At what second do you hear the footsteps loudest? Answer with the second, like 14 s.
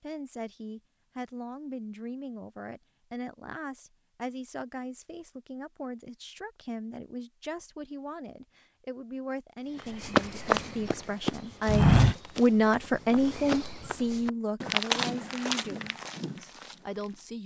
12 s.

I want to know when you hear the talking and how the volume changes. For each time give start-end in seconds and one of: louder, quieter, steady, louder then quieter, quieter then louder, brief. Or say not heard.
0.0-17.4 louder then quieter.